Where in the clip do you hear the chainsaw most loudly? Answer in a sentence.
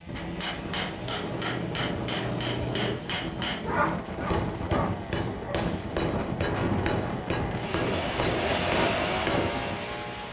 The loudest moment of the chainsaw is at 9 seconds.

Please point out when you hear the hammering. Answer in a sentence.
You can hear the hammering from 0.1 to 9.5 s.